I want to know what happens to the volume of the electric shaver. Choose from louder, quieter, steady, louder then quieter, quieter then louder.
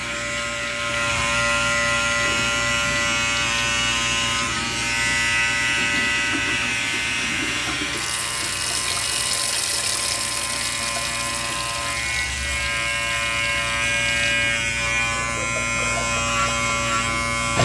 quieter then louder.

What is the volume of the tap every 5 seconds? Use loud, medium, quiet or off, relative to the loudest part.
medium, loud, medium, loud.